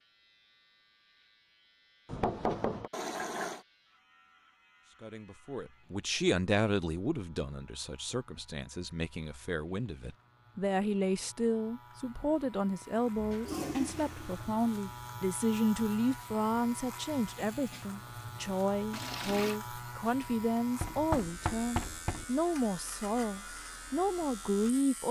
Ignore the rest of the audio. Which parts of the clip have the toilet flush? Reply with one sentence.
The toilet flush can be heard from 2.9 to 3.6 s, from 13.2 to 14.6 s and from 18.9 to 19.6 s.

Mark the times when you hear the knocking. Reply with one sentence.
You can hear the knocking from 2.0 to 2.9 s and from 20.8 to 22.2 s.